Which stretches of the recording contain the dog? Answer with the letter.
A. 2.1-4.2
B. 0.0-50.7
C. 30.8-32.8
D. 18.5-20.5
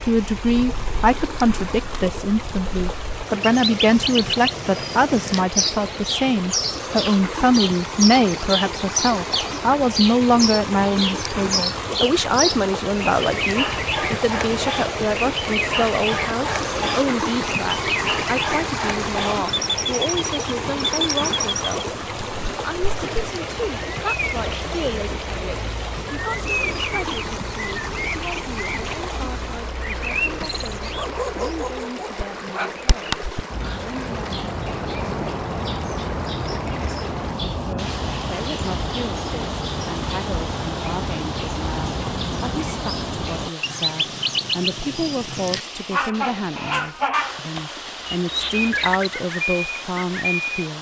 C.